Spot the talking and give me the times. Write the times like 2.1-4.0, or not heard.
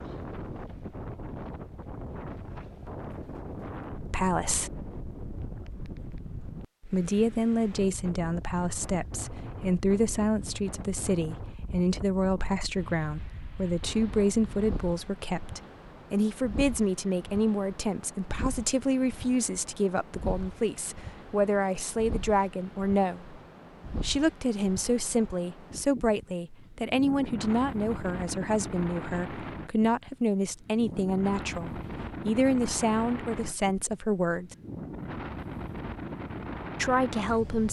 4.1-4.7, 6.8-23.4, 24.0-34.5, 36.8-37.6.